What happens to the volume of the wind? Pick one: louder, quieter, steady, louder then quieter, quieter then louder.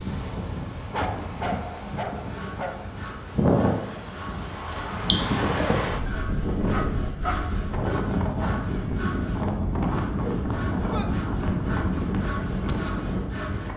louder.